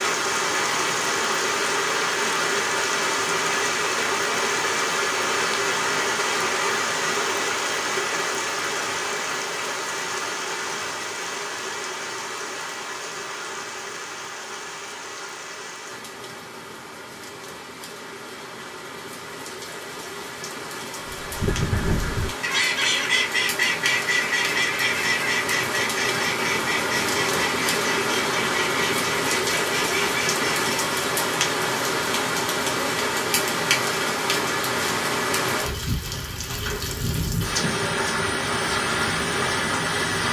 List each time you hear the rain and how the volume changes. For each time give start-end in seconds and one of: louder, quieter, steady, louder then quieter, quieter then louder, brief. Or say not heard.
0.0-40.2 quieter then louder.